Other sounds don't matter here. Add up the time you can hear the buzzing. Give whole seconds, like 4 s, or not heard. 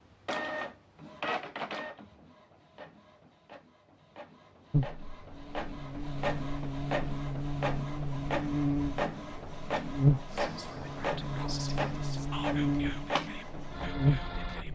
10 s.